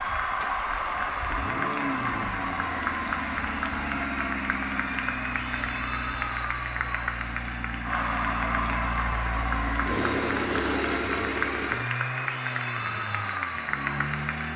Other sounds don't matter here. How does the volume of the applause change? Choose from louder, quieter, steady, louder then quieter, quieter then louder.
steady.